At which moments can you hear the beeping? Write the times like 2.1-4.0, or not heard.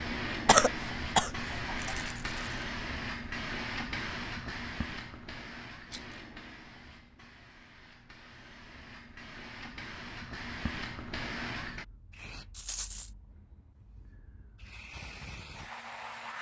not heard.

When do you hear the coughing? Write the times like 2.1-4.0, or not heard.
0.5-1.9.